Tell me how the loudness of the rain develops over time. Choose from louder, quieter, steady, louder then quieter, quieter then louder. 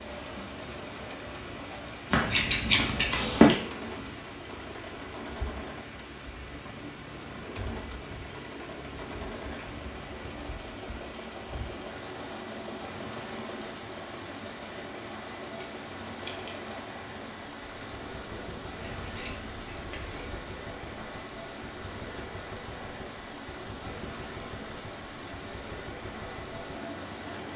steady.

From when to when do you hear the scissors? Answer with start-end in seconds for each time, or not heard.
2.1-3.5, 15.6-16.5, 19.0-20.4.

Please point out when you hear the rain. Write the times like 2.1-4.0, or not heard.
0.0-27.5.